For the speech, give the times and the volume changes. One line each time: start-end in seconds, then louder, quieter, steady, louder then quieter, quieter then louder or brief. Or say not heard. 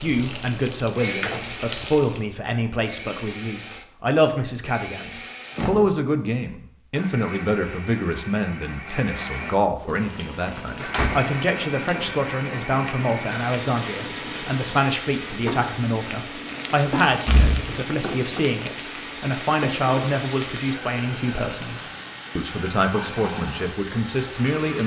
0.0-24.8 steady.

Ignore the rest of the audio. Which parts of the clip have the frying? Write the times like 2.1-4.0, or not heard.
0.0-2.3, 9.8-24.6.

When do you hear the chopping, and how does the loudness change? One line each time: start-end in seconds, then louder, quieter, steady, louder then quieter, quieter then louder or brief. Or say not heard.
not heard.